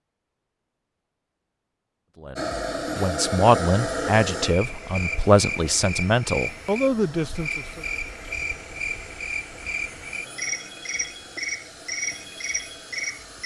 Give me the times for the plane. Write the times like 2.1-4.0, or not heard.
2.4-13.4.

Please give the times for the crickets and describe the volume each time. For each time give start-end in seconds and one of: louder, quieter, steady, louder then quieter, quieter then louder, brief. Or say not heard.
4.4-13.4 steady.